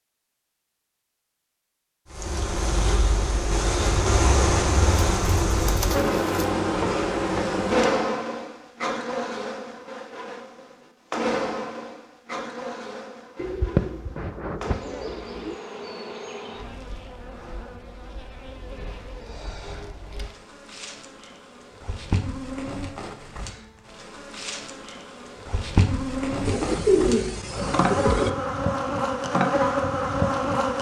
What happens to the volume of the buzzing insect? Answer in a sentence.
The loudness of the buzzing insect goes down, then up.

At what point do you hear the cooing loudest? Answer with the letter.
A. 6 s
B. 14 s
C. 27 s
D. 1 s
C.